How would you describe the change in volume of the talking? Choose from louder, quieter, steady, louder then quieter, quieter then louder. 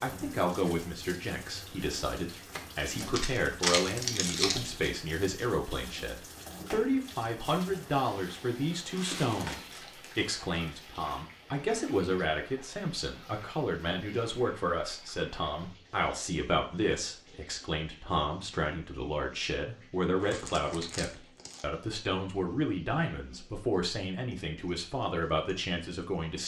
steady.